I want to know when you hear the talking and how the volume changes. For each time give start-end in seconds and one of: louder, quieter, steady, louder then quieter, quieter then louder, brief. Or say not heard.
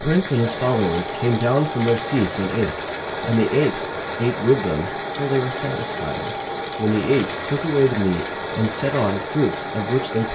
0.0-10.3 steady.